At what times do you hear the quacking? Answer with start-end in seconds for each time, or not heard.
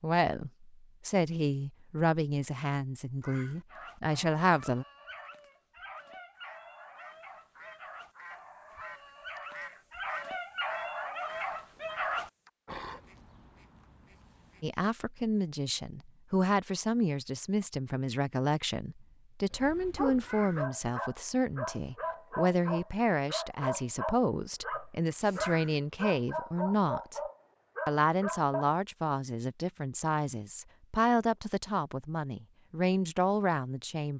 6.3-14.7.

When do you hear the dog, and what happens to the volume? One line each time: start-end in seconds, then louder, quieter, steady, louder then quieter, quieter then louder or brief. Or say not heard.
3.7-13.0 louder
19.5-28.7 steady.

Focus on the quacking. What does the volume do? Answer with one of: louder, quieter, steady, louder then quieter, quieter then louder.
louder then quieter.